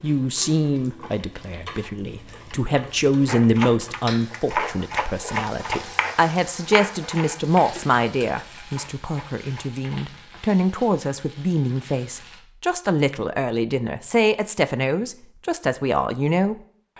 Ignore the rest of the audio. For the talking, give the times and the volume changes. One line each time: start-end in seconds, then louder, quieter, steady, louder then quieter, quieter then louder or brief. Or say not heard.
0.0-16.6 steady.